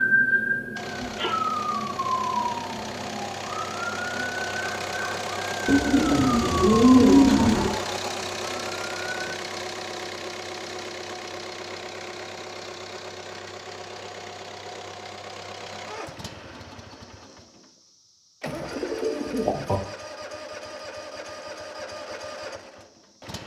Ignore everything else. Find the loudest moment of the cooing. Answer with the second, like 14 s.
7 s.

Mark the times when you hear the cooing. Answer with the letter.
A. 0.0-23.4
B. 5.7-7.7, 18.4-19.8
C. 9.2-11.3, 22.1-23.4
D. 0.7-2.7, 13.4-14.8
B.